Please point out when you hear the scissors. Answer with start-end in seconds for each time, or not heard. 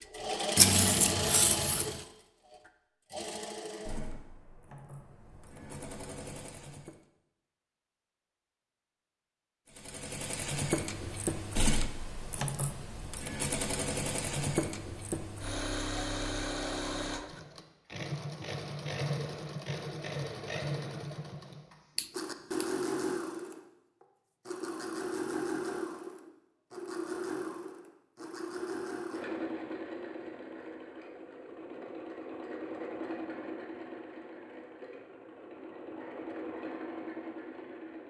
0.6-2.0, 21.9-22.7.